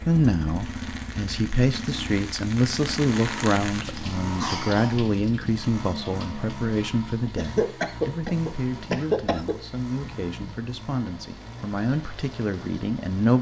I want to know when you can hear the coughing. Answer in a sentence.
You can hear the coughing from 4.2 to 5.0 s and from 7.3 to 9.6 s.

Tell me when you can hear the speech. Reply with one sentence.
You can hear the speech from 0.0 to 13.3 s.